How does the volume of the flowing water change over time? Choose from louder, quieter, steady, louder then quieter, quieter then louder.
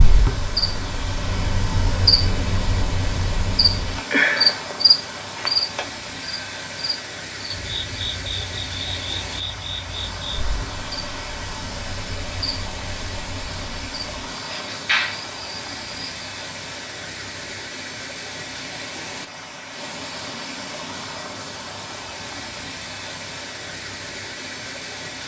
steady.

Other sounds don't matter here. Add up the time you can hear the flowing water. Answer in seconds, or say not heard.
25 s.